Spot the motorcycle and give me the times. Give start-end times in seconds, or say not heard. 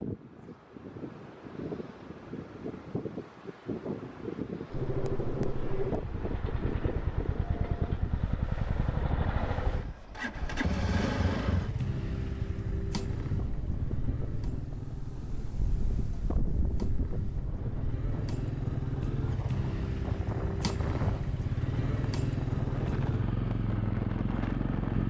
4.7-25.0.